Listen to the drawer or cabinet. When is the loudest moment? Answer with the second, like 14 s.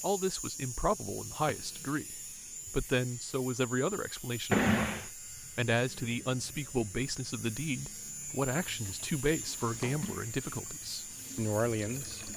5 s.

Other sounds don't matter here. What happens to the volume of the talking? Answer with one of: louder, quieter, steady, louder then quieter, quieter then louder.
steady.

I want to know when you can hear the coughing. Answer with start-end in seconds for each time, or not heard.
not heard.